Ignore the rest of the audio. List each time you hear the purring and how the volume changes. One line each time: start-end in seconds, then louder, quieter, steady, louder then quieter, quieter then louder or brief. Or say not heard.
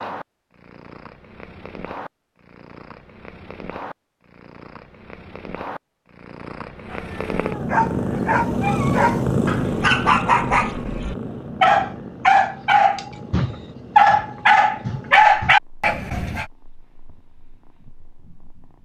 0.0-18.8 louder then quieter.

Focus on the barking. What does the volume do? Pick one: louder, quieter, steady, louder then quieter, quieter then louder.
louder.